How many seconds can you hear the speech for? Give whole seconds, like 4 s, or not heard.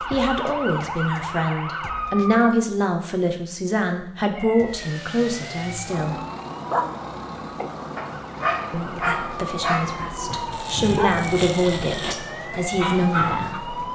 11 s.